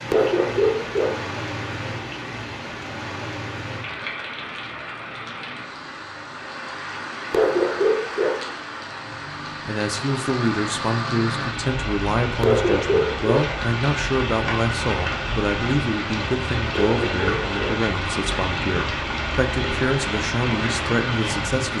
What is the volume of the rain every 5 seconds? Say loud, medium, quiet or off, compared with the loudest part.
medium, medium, loud, loud, loud.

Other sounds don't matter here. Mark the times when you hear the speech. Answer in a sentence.
You can hear the speech from 9.7 to 21.7 s.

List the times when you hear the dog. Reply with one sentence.
You can hear the dog from 0.1 to 1.2 s, from 7.3 to 8.4 s, from 12.4 to 13.5 s and from 16.8 to 17.9 s.